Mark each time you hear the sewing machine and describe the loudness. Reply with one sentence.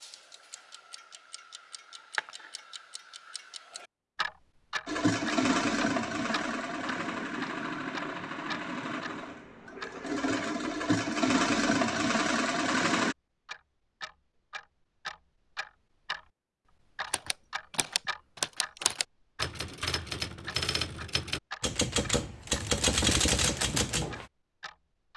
The sewing machine can be heard from 4.8 to 13.2 s, getting quieter then louder.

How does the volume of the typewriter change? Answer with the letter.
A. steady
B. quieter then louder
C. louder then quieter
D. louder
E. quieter
D.